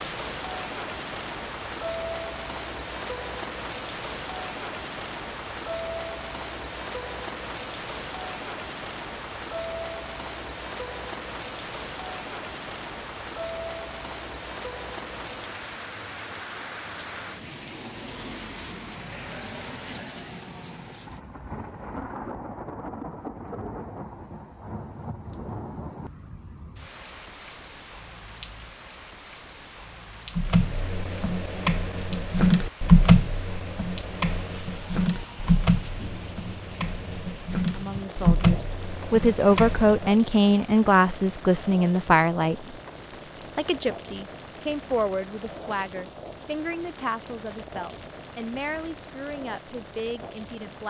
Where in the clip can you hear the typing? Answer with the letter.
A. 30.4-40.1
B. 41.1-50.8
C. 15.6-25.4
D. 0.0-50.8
A.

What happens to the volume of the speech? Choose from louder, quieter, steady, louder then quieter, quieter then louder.
quieter.